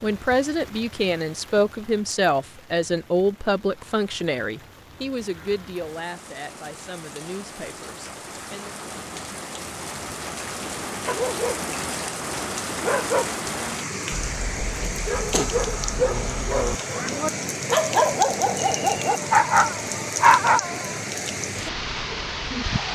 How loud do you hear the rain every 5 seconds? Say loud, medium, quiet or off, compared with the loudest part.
quiet, medium, loud, loud, loud.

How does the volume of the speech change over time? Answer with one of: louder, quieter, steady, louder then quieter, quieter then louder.
quieter.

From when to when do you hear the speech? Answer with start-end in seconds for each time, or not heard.
0.0-8.8.